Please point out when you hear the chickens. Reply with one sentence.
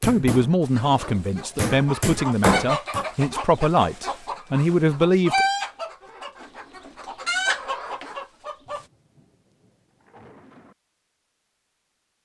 The chickens can be heard from 0.6 to 8.8 s.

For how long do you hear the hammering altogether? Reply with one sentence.
You can hear the hammering for 3 seconds altogether.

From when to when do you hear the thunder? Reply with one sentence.
You can hear the thunder from 8.7 to 10.8 s.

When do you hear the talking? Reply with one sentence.
You can hear the talking from 0.0 to 5.5 s.